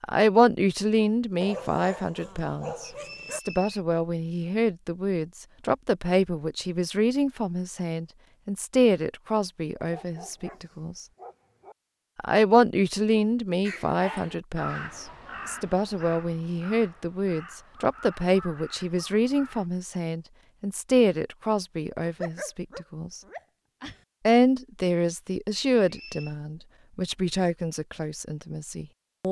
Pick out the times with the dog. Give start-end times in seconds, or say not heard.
1.4-3.4, 9.8-11.8, 22.1-24.0.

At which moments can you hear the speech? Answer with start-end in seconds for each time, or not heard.
0.0-11.1, 12.2-23.2, 24.2-29.2.